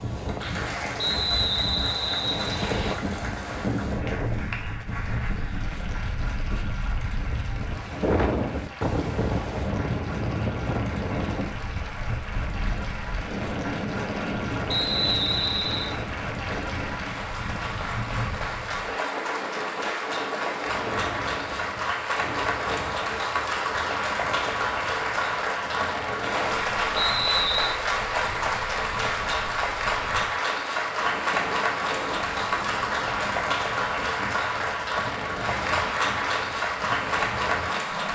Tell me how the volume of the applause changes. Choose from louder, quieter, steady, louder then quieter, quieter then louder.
louder.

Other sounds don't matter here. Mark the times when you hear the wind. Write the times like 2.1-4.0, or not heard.
0.0-38.1.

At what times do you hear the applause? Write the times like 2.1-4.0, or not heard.
0.1-38.1.